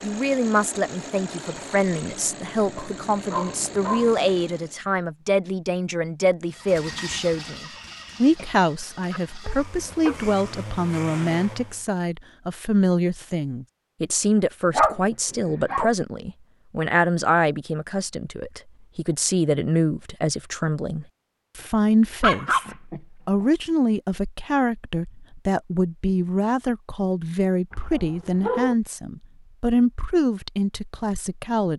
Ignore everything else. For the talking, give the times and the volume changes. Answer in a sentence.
The talking can be heard from 0.0 to 31.7 s, at a steady volume.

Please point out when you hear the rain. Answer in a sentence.
The rain can't be heard in this clip.